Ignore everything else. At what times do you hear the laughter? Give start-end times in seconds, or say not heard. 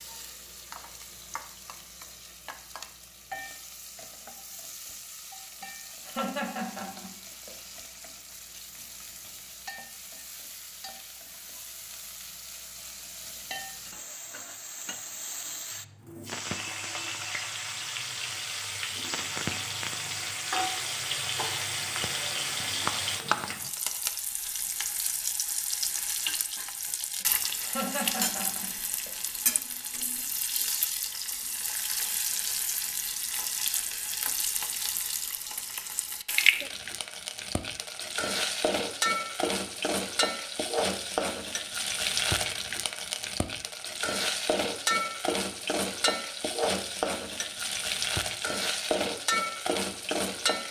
5.6-7.5, 27.2-29.1.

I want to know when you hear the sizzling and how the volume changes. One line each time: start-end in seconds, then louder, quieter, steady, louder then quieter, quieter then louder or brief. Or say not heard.
0.0-50.6 louder.